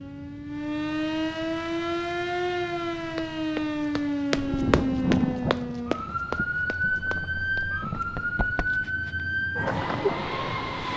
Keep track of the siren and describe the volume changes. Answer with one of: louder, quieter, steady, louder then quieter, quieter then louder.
steady.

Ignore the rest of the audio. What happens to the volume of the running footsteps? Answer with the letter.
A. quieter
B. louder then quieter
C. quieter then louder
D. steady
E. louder
A.